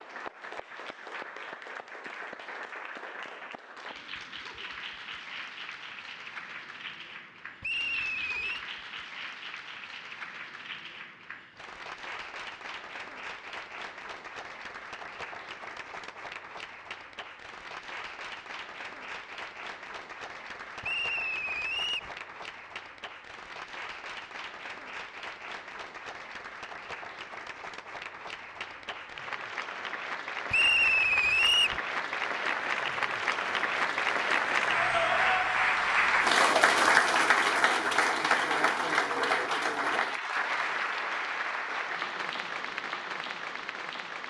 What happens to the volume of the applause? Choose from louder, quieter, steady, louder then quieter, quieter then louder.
louder.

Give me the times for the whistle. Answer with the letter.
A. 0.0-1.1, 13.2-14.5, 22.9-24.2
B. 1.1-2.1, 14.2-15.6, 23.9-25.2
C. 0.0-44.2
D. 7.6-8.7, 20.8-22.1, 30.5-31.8
D.